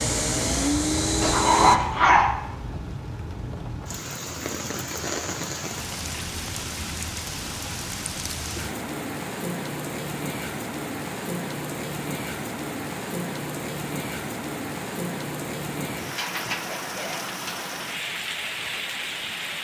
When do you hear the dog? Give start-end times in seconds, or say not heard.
0.8-2.4.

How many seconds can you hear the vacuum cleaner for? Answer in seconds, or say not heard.
2 s.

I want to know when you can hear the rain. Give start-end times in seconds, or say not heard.
0.0-19.5.